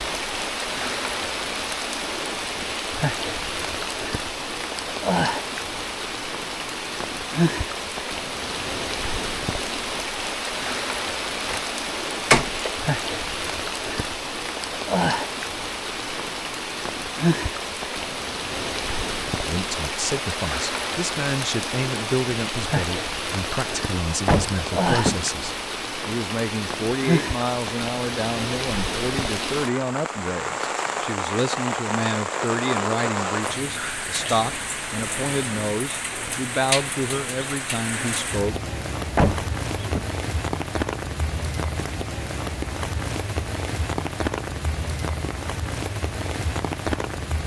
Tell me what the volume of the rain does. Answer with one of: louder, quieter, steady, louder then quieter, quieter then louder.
steady.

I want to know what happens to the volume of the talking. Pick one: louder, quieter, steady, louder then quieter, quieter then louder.
steady.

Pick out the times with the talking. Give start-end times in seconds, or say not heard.
19.4-38.5.